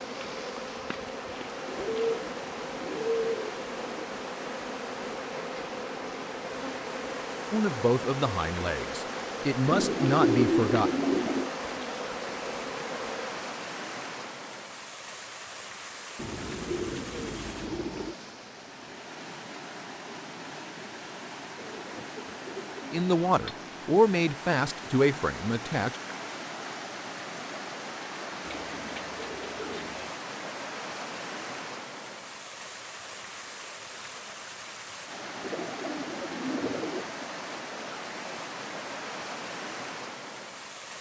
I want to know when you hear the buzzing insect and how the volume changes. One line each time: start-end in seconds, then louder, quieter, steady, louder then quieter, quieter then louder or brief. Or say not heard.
0.0-13.4 steady.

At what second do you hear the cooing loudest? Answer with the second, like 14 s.
10 s.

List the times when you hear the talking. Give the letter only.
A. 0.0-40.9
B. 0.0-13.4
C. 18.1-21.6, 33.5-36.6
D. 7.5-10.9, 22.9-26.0
D.